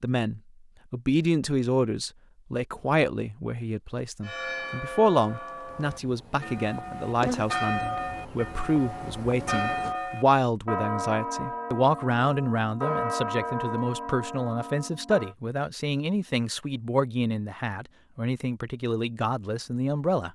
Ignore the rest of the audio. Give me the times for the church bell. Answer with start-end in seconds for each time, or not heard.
4.2-15.3.